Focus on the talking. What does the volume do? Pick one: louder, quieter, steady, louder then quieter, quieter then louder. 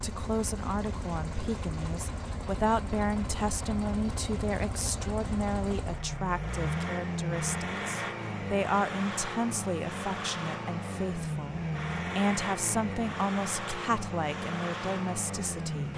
steady.